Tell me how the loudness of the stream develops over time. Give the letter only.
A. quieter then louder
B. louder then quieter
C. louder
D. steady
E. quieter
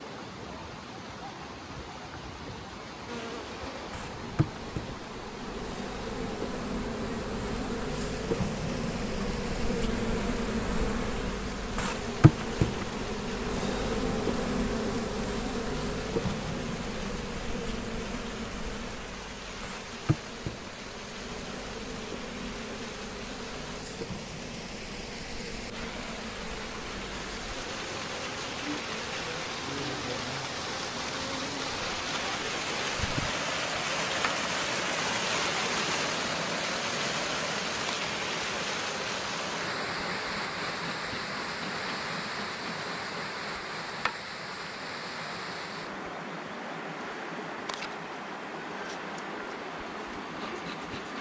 B.